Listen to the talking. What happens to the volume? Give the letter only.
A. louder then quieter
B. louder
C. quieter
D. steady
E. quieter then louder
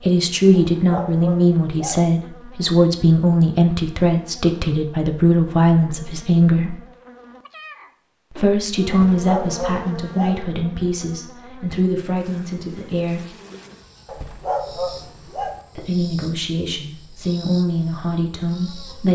C.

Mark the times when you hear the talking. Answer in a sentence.
You can hear the talking from 0.0 to 6.8 s, from 8.3 to 13.2 s and from 15.8 to 19.1 s.